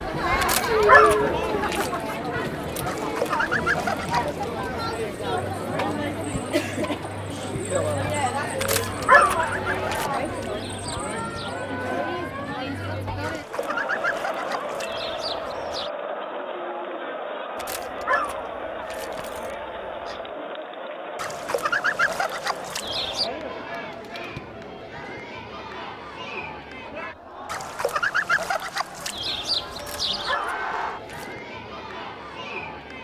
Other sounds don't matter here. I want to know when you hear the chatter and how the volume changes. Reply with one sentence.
The chatter can be heard from 0.0 to 33.0 s, getting quieter.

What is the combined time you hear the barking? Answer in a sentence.
The barking can be heard for 7 seconds in total.